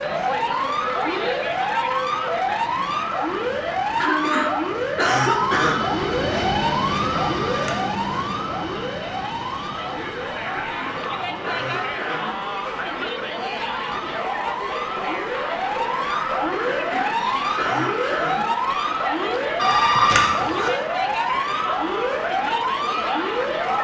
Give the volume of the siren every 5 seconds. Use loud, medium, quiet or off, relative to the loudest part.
loud, loud, medium, loud, loud.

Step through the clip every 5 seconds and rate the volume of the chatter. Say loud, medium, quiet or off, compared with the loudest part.
loud, medium, loud, loud, loud.